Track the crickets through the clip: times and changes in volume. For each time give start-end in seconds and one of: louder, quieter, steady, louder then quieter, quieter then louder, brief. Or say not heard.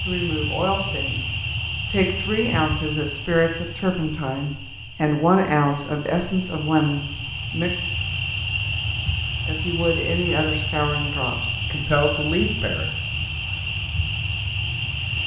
0.0-15.2 quieter then louder.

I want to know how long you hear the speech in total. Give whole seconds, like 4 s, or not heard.
11 s.